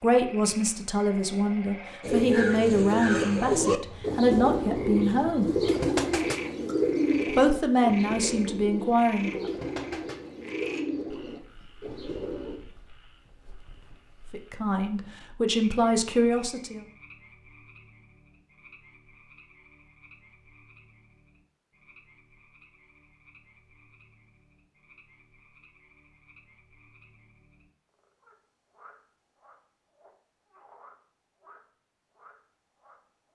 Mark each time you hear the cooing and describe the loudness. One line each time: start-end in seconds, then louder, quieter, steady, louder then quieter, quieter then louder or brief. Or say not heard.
2.0-12.6 quieter.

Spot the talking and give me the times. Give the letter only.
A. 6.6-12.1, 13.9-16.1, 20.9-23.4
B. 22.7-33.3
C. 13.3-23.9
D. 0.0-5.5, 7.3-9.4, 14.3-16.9
D.